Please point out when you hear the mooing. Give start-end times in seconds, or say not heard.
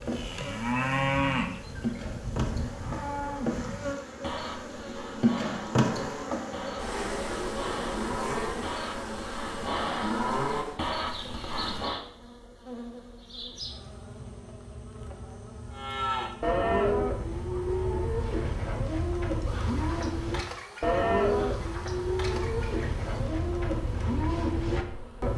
0.0-12.0, 15.7-25.3.